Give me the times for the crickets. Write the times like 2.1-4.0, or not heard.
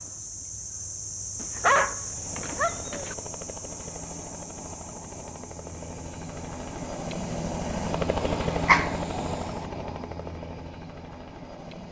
0.0-9.6.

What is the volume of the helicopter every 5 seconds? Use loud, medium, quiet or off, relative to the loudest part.
medium, loud, medium.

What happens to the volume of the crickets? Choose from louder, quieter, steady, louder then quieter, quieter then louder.
quieter.